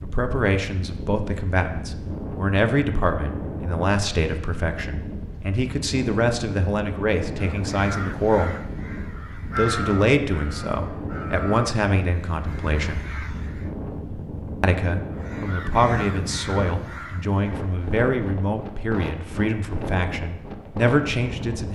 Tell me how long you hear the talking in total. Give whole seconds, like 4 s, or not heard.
19 s.